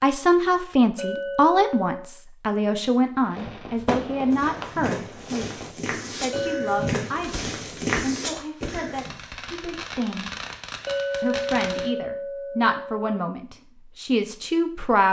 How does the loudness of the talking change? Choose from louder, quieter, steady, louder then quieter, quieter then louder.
quieter then louder.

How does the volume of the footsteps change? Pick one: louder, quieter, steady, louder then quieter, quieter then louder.
louder.